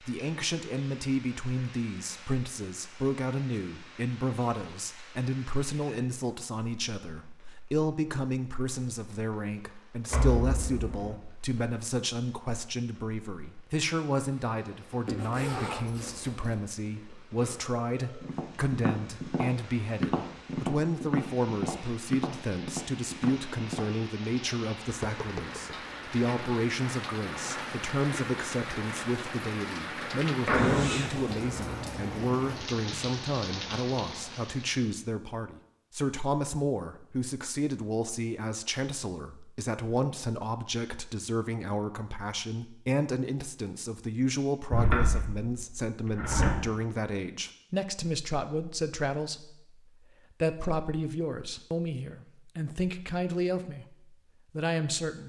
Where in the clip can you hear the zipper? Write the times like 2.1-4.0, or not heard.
15.1-16.6, 30.6-31.4.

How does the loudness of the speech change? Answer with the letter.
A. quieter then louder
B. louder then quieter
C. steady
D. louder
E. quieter
C.